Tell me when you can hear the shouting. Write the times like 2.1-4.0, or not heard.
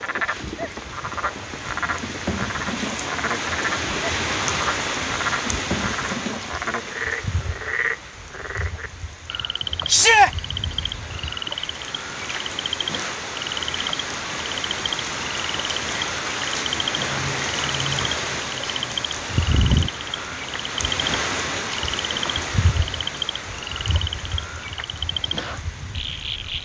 9.8-10.3.